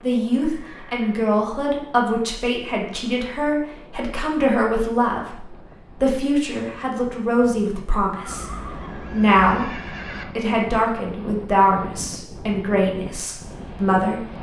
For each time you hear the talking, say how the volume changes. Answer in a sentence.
You can hear the talking from 0.0 to 14.2 s, at a steady volume.